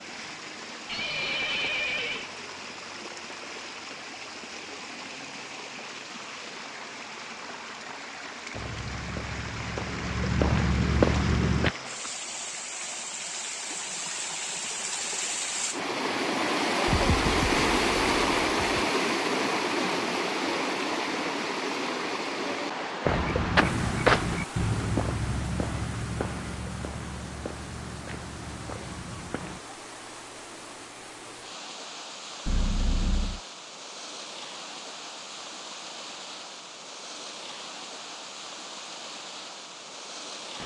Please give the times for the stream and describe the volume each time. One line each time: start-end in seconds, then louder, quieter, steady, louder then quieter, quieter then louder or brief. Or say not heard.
0.0-40.6 louder then quieter.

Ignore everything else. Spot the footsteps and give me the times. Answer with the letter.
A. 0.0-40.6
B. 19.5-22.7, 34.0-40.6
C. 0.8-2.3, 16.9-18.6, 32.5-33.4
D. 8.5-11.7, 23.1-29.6
D.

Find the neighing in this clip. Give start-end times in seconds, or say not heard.
0.8-2.3, 16.9-18.6, 32.5-33.4.